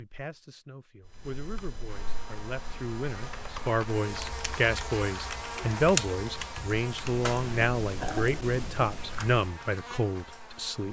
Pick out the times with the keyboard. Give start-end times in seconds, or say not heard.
1.1-9.6.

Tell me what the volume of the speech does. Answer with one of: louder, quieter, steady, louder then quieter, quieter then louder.
louder.